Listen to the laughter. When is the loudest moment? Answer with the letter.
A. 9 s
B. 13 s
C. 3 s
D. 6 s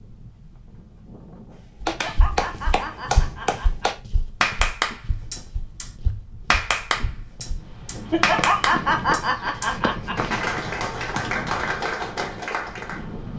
A.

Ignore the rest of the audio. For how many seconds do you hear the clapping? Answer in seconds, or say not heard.
11 s.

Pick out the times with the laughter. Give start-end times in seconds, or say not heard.
1.9-3.9, 8.1-10.4.